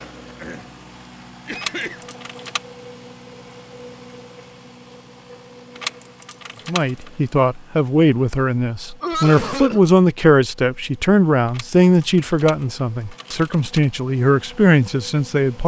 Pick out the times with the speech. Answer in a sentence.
You can hear the speech from 6.7 to 15.6 s.